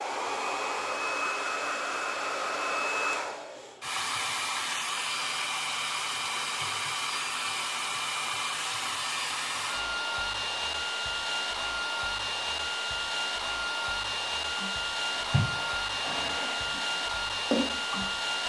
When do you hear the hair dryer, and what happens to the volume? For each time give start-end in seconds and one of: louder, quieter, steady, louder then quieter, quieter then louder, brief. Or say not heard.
0.0-18.4 steady.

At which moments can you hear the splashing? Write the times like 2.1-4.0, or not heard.
14.6-18.1.